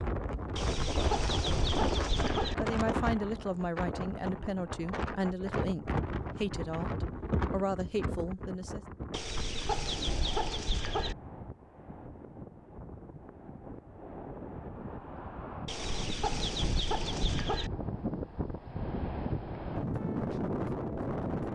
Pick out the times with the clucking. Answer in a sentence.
You can hear the clucking from 0.6 to 2.5 s, from 9.1 to 11.2 s and from 15.7 to 17.7 s.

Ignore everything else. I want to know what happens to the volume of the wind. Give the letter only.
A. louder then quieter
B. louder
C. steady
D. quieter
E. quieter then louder
E.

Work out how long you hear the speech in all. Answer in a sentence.
You can hear the speech for 6 seconds altogether.